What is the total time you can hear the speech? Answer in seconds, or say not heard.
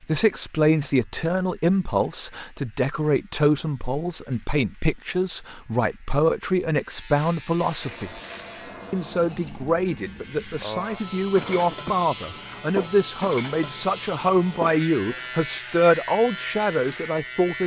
17 s.